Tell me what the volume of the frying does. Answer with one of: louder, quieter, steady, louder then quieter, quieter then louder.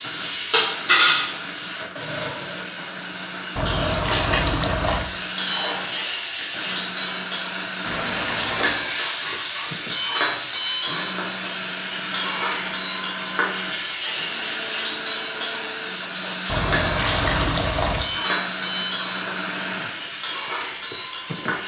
steady.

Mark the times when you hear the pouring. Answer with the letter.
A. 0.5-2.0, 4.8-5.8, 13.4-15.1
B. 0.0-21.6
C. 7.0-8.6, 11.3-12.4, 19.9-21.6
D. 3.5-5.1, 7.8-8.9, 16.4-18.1
D.